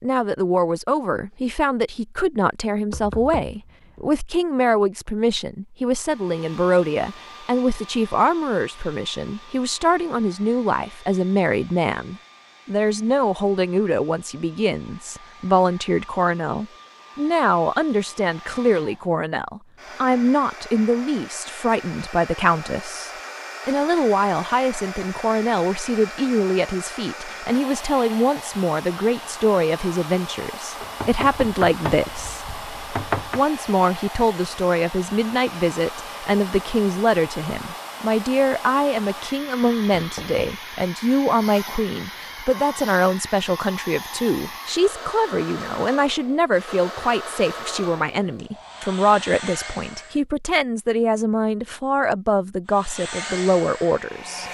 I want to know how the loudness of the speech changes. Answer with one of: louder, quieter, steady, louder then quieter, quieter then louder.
steady.